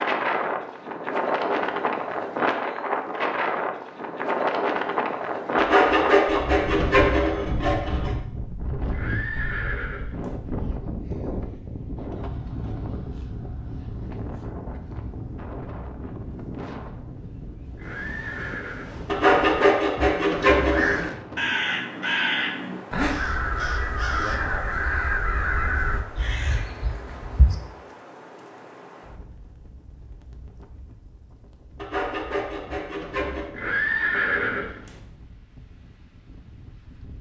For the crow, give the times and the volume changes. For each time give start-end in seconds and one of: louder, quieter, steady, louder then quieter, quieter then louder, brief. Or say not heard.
20.4-27.6 quieter.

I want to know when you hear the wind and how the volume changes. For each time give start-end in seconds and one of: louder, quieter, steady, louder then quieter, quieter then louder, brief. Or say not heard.
0.0-37.1 quieter.